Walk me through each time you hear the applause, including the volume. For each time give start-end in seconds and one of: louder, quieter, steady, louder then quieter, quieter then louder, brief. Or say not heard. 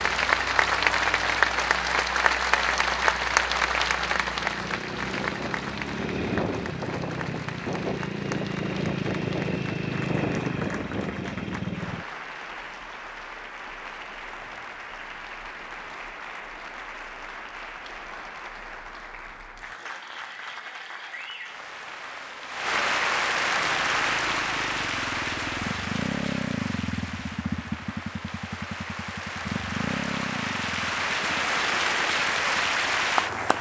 0.0-33.5 quieter then louder.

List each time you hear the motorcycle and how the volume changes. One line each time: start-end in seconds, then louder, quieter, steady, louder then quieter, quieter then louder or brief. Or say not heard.
0.0-12.1 louder
23.6-33.5 louder then quieter.